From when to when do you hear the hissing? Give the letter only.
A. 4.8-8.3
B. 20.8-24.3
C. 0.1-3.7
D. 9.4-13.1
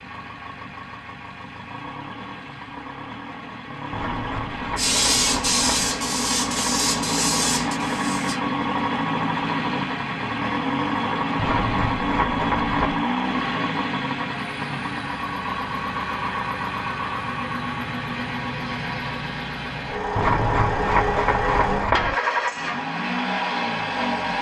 A.